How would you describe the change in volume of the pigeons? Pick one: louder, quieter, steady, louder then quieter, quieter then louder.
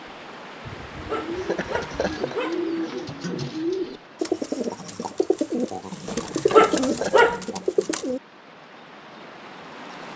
louder.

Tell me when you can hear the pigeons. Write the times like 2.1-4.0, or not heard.
0.7-8.2.